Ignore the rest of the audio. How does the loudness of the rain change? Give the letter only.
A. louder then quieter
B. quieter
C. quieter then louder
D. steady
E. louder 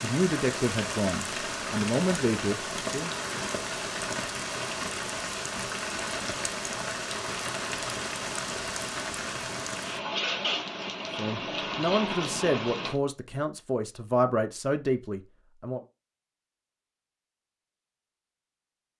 D.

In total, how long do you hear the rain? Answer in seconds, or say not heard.
13 s.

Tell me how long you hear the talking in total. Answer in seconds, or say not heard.
8 s.